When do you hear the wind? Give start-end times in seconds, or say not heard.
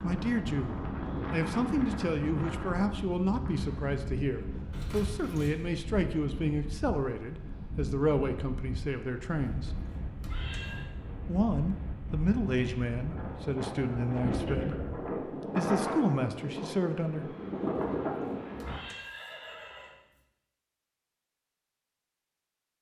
0.0-18.9.